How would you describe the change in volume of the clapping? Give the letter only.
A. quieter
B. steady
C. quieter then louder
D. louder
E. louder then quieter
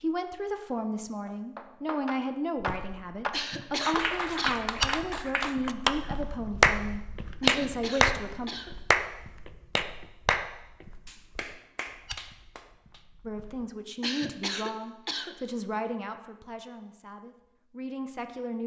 E.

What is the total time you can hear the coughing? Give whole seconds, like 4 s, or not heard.
4 s.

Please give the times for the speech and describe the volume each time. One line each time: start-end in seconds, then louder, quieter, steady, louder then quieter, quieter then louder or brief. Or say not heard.
0.0-8.5 steady
13.2-18.6 quieter then louder.